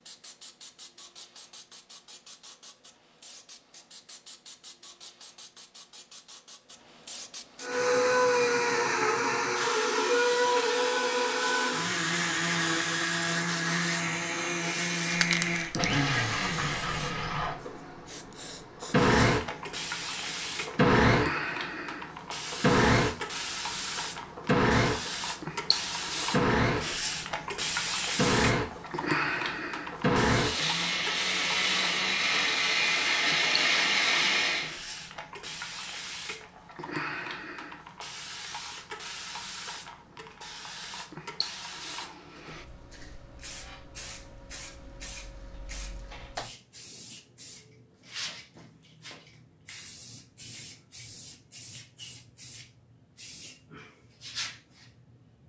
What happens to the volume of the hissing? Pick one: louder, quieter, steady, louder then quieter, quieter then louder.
louder then quieter.